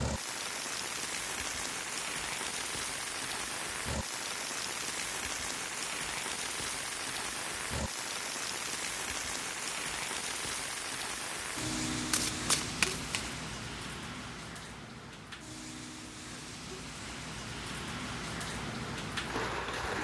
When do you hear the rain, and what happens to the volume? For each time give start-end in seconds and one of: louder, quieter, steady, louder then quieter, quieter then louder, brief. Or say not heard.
0.0-20.0 steady.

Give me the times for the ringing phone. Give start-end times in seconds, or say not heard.
not heard.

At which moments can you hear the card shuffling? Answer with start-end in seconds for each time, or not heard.
11.9-13.3.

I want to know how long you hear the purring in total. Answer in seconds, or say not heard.
not heard.